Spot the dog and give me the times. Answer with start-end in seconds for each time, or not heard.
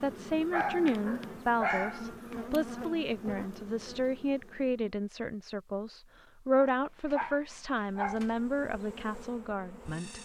0.5-2.5, 6.6-8.3.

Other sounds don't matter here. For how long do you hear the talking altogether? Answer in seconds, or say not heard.
10 s.